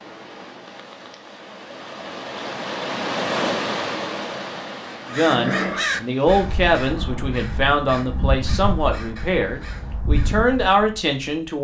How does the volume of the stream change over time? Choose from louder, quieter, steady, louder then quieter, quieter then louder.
louder then quieter.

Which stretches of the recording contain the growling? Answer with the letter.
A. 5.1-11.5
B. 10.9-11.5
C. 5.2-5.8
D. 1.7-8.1
C.